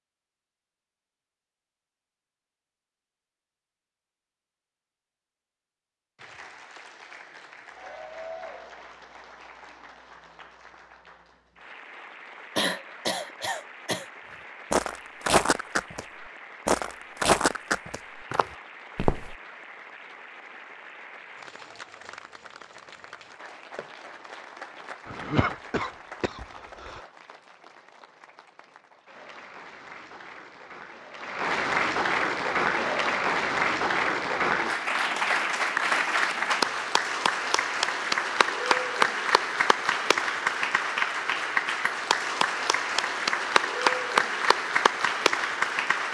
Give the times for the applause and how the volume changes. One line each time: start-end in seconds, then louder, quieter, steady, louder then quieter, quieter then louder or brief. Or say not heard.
6.2-46.0 louder.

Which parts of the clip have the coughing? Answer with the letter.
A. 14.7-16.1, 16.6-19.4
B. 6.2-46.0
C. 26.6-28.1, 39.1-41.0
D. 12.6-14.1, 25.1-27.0
D.